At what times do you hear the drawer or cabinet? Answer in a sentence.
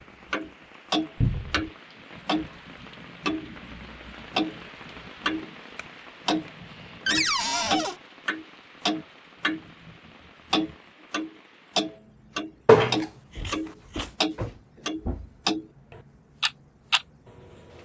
The drawer or cabinet can be heard from 1.2 to 1.7 s, from 7.0 to 8.0 s and from 13.3 to 15.3 s.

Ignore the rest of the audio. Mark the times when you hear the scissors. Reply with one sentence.
You can hear the scissors from 5.8 to 6.7 s and from 12.7 to 14.1 s.